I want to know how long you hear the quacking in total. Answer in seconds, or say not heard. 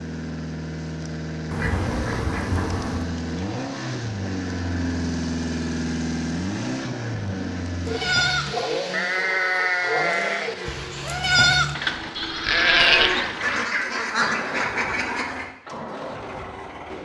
4 s.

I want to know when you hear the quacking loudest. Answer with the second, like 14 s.
14 s.